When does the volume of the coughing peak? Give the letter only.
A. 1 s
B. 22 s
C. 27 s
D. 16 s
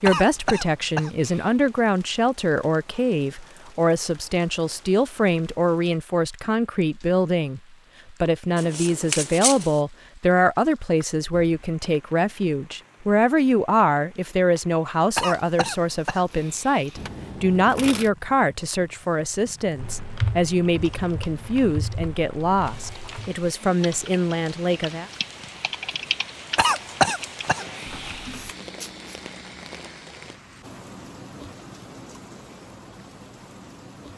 C.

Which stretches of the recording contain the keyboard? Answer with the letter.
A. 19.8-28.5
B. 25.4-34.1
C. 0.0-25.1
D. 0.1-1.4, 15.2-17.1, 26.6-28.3
A.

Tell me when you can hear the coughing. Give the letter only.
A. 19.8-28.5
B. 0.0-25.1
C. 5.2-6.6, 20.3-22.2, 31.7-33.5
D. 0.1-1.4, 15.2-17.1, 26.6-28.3
D.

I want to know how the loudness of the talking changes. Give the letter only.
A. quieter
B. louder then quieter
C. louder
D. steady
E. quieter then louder
D.